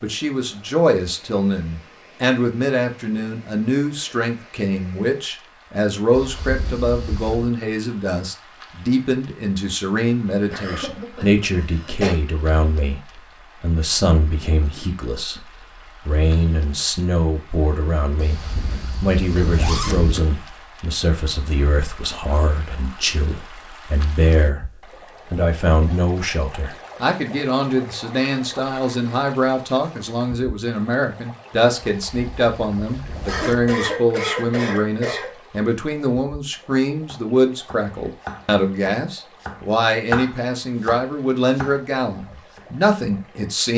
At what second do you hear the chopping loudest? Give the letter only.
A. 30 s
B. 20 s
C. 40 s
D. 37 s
C.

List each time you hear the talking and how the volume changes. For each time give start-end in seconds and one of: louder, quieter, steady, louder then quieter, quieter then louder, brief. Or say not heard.
0.0-43.7 steady.